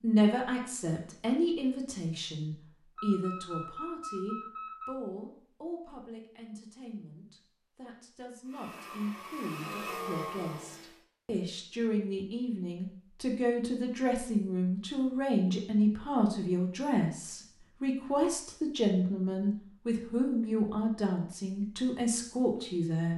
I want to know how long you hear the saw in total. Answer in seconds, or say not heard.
not heard.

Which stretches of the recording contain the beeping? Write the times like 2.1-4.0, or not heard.
3.0-4.9.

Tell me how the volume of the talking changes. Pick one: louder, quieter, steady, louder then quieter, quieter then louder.
quieter then louder.